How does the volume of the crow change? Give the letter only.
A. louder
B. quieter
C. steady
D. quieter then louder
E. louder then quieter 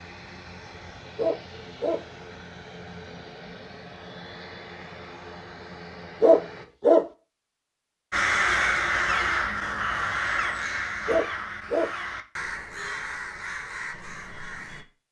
B.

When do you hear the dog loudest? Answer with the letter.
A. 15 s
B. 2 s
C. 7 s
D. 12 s
C.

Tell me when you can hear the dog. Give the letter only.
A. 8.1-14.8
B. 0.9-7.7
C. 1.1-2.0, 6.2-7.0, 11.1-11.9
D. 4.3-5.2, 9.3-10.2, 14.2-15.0
C.